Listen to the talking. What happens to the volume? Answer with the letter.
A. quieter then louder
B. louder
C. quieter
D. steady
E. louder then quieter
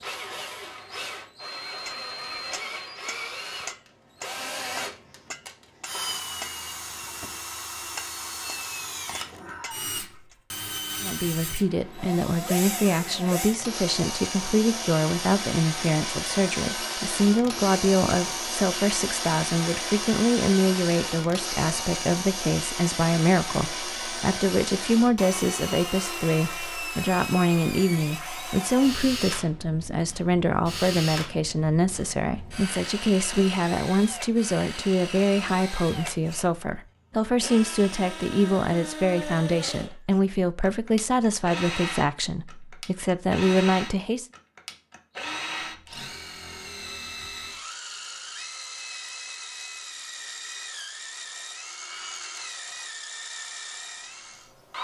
D.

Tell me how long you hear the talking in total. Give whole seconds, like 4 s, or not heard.
33 s.